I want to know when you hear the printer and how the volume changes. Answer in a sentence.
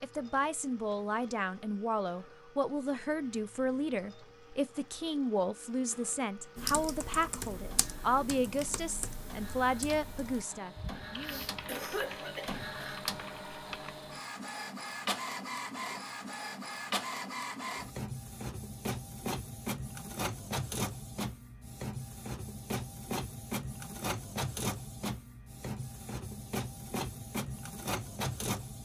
The printer can be heard from 0.0 to 28.8 s, getting louder.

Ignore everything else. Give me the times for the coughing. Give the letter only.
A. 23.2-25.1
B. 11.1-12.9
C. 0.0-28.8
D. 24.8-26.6
B.